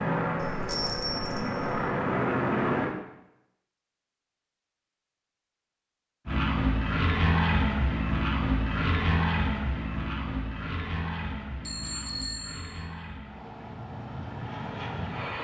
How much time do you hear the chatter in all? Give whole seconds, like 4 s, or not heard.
not heard.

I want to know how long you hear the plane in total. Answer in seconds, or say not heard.
12 s.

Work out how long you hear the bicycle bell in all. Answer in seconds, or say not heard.
3 s.